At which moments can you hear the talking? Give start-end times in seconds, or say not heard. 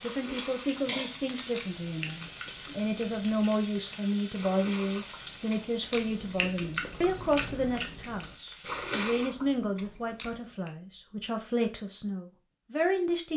0.0-13.3.